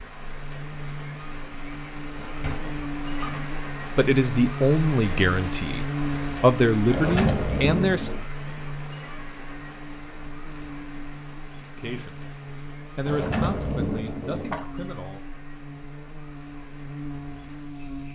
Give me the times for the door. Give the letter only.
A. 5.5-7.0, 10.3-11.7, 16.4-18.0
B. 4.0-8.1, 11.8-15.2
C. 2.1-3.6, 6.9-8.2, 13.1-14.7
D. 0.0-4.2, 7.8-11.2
C.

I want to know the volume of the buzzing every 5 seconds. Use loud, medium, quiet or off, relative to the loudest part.
loud, loud, medium, medium.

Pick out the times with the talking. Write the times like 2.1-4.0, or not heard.
4.0-8.1, 11.8-15.2.